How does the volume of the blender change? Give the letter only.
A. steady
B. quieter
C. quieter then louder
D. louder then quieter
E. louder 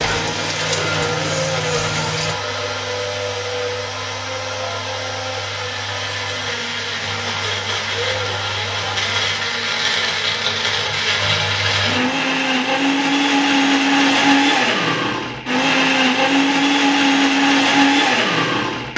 E.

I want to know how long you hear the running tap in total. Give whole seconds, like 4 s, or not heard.
2 s.